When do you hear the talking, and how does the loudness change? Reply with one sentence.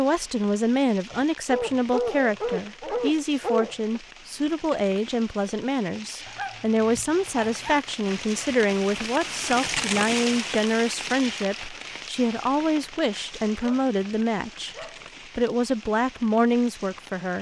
You can hear the talking from 0.0 to 14.8 s, at a steady volume; and briefly from 15.3 to 17.3 s.